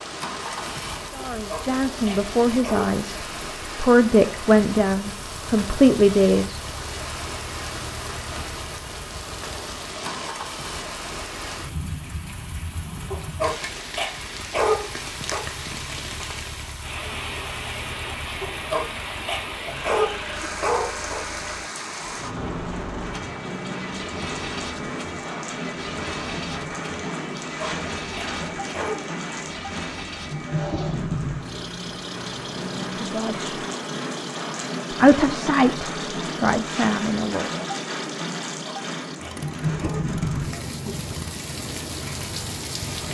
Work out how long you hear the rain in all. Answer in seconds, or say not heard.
43 s.